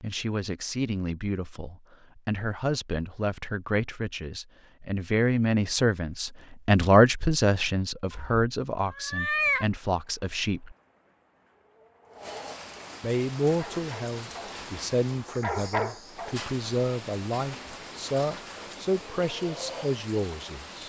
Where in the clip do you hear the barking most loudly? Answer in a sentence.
The volume of the barking peaks at 16 seconds.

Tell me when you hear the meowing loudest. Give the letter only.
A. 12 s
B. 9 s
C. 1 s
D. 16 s
B.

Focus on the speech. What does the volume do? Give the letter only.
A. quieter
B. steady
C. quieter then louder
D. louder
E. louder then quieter
E.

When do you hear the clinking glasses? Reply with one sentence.
The clinking glasses can't be heard in this clip.